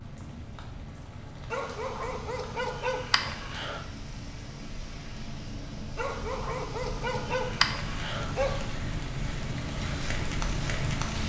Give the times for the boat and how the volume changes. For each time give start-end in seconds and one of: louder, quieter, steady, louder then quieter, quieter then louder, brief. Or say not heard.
0.0-11.2 louder.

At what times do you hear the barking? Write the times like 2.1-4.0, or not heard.
1.5-3.9, 6.0-8.7.